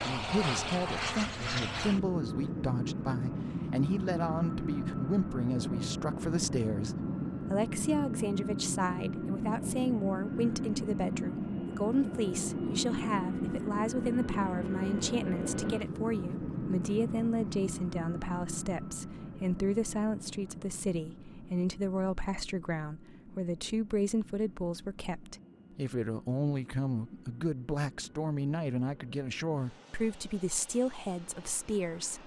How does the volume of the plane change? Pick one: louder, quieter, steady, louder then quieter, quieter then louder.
quieter.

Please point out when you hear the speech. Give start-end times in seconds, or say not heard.
0.0-32.2.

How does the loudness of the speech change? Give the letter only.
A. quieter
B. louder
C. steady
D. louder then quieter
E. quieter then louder
C.